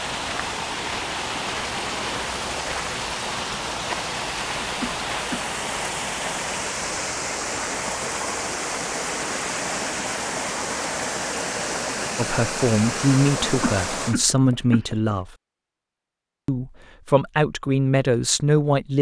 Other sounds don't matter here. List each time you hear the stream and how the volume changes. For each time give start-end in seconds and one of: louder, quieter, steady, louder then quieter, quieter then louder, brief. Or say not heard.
0.0-14.2 steady.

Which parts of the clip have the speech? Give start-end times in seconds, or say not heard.
12.2-15.3, 16.4-18.9.